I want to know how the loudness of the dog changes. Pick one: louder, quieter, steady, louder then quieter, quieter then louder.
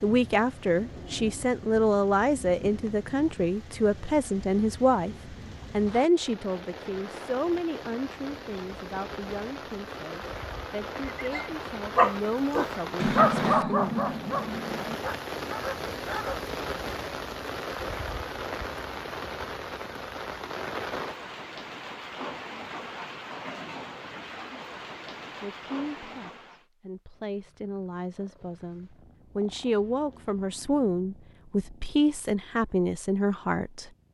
quieter.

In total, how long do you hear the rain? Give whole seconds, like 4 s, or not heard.
27 s.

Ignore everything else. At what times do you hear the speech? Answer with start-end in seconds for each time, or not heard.
0.0-13.9, 25.4-33.9.